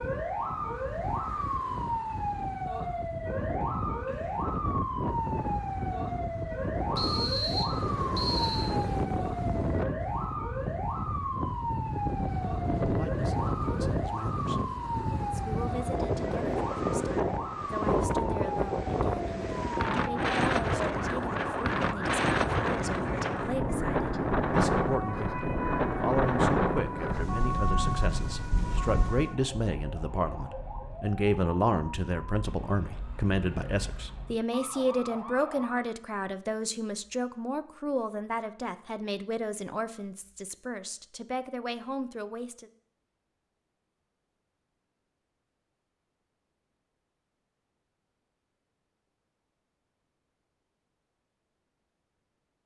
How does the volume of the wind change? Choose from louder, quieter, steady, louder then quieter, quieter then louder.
louder.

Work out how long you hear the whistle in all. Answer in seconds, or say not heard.
2 s.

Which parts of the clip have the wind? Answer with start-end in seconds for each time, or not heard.
0.0-29.4.